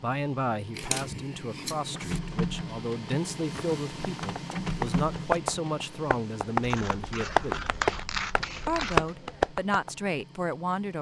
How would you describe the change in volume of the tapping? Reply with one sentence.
The loudness of the tapping goes down, then up.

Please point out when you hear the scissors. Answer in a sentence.
The scissors can be heard from 0.7 to 2.2 s and from 6.6 to 9.2 s.